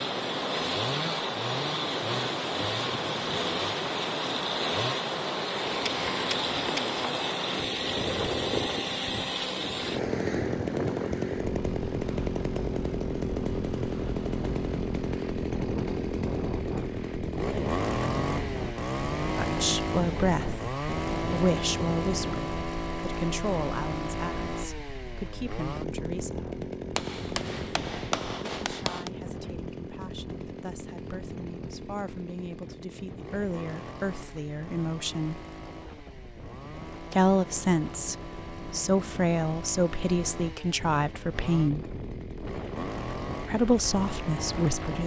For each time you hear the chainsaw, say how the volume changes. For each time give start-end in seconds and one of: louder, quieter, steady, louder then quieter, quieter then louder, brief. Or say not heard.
0.0-45.0 quieter.